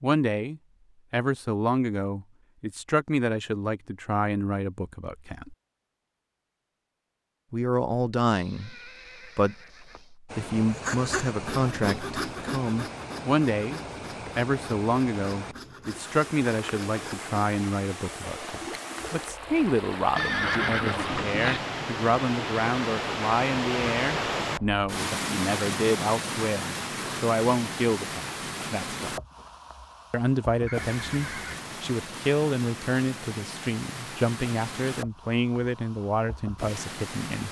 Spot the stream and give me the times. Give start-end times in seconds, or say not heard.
10.2-37.4.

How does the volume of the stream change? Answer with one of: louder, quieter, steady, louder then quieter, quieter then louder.
louder then quieter.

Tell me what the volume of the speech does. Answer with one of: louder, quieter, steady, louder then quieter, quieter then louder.
steady.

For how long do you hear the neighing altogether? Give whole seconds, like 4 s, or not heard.
4 s.